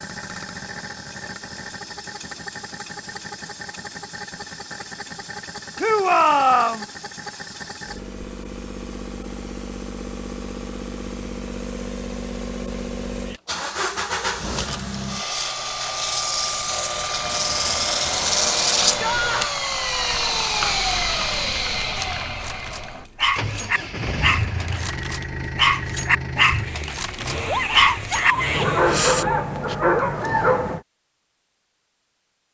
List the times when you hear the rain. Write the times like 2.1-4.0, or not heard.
not heard.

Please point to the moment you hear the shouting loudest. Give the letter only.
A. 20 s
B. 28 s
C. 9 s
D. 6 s
D.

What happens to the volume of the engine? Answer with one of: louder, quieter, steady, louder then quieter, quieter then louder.
louder then quieter.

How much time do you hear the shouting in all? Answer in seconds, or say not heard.
3 s.